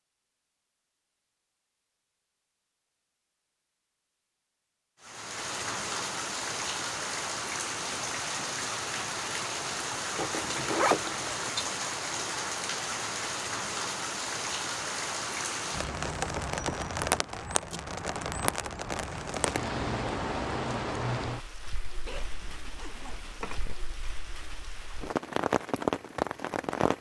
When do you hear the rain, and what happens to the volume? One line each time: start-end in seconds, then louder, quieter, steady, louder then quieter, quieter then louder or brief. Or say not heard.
5.0-26.9 steady.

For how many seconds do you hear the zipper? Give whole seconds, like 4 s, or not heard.
3 s.